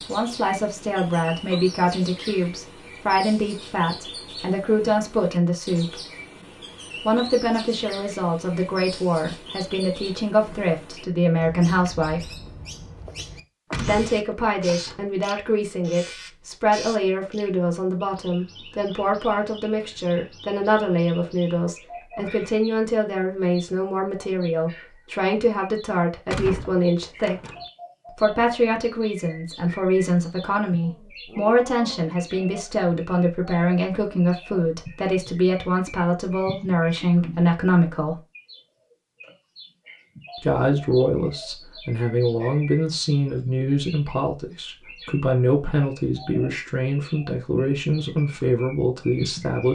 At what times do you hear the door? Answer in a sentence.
The door can be heard from 13.7 to 15.1 s and from 26.2 to 27.6 s.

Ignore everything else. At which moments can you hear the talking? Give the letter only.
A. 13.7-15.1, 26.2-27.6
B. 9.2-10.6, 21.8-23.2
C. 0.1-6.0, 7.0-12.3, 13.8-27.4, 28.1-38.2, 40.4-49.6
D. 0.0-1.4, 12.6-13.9
C.